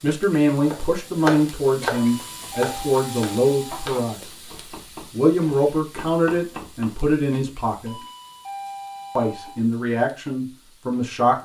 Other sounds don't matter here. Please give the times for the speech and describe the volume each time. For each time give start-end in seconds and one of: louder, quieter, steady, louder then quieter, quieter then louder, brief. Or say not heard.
0.0-4.2 steady
5.1-8.0 brief
9.2-11.4 brief.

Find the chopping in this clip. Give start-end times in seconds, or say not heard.
0.7-7.2.